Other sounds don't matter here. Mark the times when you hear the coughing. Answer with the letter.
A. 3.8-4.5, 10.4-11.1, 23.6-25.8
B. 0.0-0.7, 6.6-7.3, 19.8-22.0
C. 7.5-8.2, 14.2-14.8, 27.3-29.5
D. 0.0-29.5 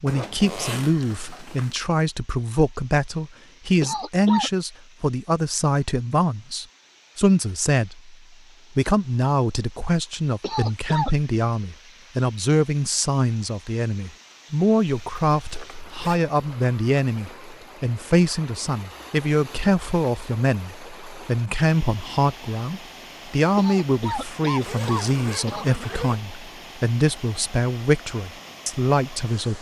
A.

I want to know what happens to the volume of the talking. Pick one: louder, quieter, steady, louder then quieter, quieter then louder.
steady.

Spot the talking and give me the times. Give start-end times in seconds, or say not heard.
0.0-29.5.